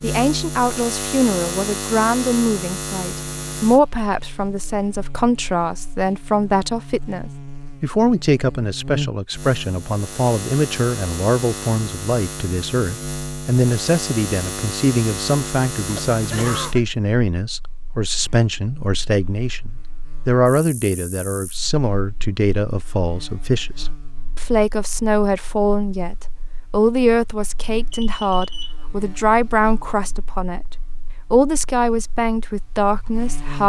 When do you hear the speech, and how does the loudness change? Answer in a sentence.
The speech can be heard from 0.0 to 33.6 s, at a steady volume.